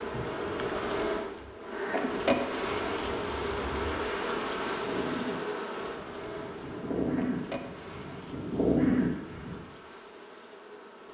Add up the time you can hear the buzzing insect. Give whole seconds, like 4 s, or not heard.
11 s.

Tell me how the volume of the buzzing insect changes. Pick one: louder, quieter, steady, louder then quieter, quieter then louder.
quieter.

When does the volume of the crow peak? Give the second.
9 s.